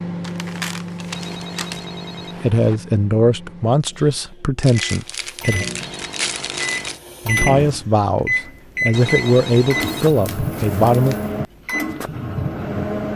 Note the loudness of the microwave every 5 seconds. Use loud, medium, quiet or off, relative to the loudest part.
medium, loud, loud.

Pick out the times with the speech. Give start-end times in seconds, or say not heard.
2.4-5.7, 7.2-11.2.